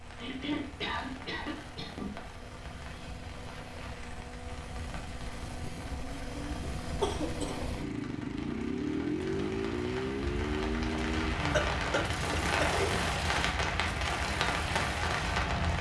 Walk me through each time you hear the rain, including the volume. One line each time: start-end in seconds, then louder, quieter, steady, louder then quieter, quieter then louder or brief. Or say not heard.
0.0-15.7 louder.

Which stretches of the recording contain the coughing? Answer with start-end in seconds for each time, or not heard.
0.2-2.1, 5.8-7.8, 11.5-13.1.